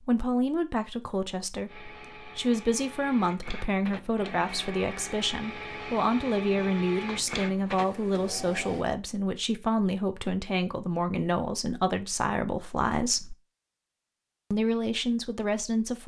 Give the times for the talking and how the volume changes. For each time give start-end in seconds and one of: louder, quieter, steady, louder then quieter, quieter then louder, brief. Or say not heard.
0.1-13.3 steady
14.5-16.0 brief.